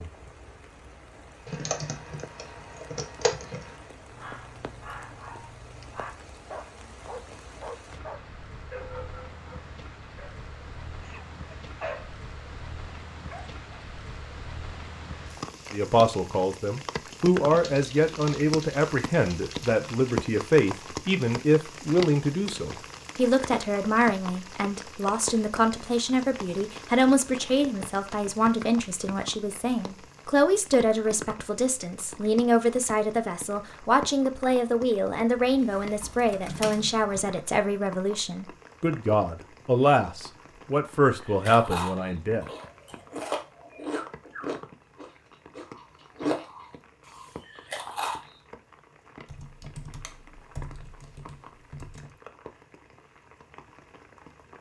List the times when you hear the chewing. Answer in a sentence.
The chewing can be heard from 41.2 to 48.2 s.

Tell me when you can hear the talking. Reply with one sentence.
You can hear the talking from 15.7 to 42.5 s.